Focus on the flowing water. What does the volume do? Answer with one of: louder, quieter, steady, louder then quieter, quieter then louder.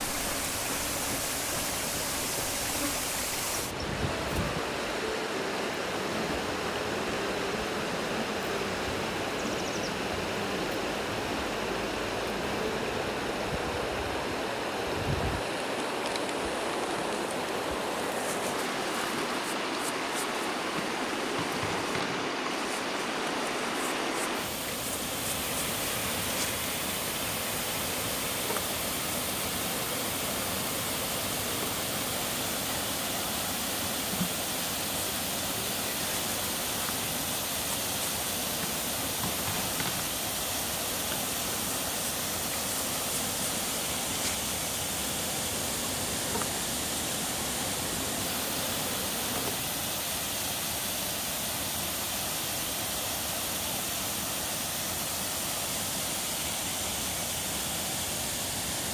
steady.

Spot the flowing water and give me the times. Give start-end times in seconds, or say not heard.
0.0-58.9.